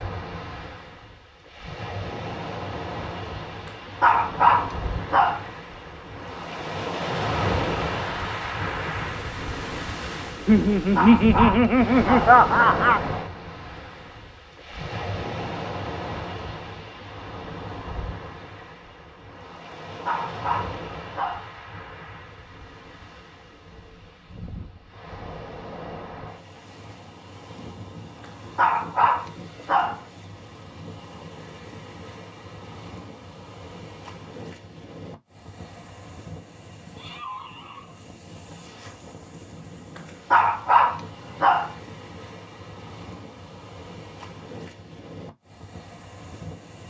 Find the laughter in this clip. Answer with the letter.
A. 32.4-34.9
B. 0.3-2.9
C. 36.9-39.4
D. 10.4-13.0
D.